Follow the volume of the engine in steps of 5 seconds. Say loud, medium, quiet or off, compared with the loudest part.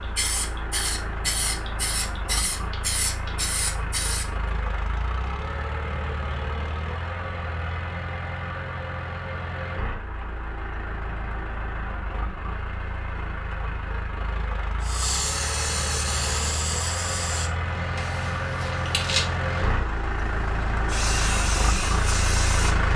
medium, medium, medium, loud, loud.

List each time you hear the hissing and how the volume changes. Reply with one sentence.
You can hear the hissing from 0.0 to 4.2 s, at a steady volume; and from 14.8 to 22.9 s, getting quieter then louder.